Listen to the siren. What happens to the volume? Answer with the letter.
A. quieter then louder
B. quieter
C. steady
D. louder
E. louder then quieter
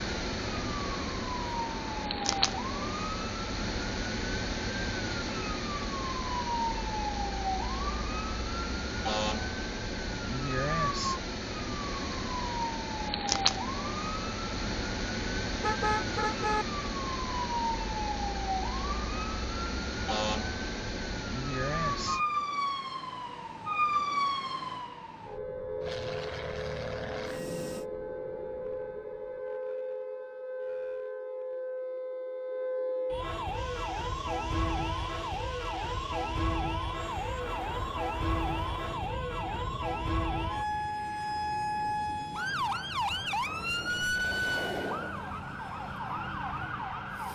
C.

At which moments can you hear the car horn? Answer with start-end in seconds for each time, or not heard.
15.6-16.6.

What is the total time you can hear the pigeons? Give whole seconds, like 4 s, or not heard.
not heard.